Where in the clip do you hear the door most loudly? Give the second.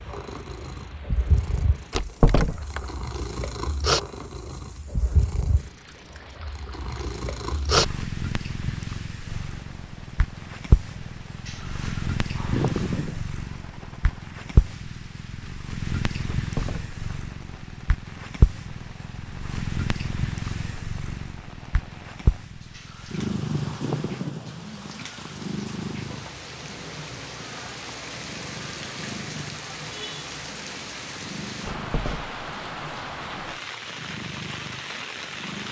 2 s.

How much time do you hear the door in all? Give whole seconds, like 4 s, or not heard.
2 s.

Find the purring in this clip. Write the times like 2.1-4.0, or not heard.
0.0-35.6.